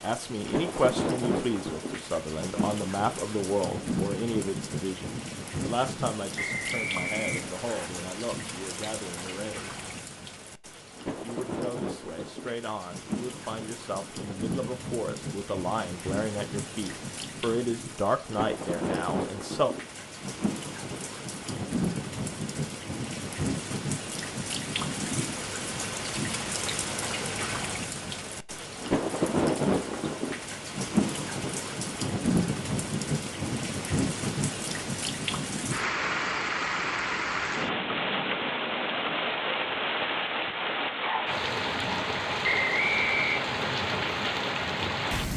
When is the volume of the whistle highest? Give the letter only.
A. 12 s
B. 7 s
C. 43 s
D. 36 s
C.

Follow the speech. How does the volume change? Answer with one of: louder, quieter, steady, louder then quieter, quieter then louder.
quieter then louder.